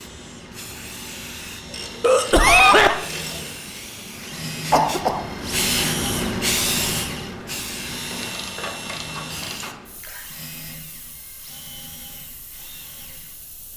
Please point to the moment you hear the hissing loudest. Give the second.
6 s.